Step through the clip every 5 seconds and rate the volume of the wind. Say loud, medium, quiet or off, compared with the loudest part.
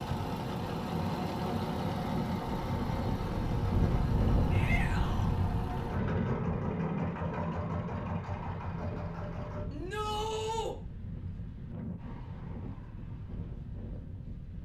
loud, loud, medium.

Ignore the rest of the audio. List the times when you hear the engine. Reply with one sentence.
You can hear the engine from 0.0 to 9.7 s.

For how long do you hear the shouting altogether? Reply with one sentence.
You can hear the shouting for 2 seconds altogether.